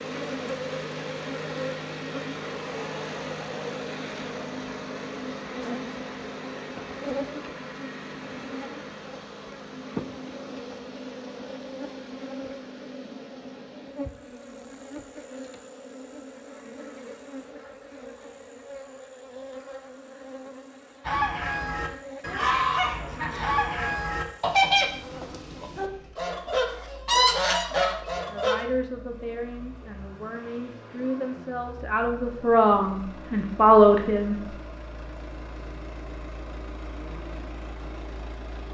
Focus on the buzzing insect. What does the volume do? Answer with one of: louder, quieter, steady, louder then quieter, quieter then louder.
quieter.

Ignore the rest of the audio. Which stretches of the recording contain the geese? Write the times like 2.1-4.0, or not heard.
21.1-28.6.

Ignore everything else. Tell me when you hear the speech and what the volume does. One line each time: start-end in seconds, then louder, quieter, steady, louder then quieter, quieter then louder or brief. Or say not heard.
28.2-34.5 quieter then louder.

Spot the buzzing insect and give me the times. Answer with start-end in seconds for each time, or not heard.
0.0-25.7.